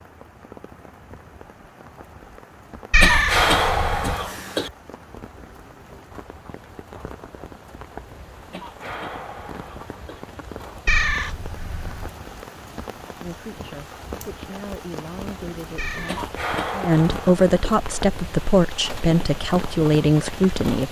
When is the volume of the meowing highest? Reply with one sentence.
The loudest moment of the meowing is at 3 seconds.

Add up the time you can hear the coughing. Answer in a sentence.
The coughing can be heard for 5 seconds in total.